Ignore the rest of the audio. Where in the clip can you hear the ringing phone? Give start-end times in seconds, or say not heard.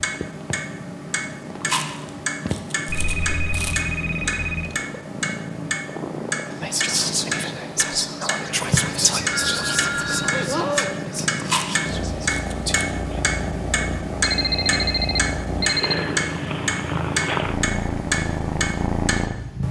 2.9-4.8, 9.3-11.0, 14.2-16.1.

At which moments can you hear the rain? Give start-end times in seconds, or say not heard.
not heard.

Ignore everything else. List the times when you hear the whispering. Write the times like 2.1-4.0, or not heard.
6.5-13.2.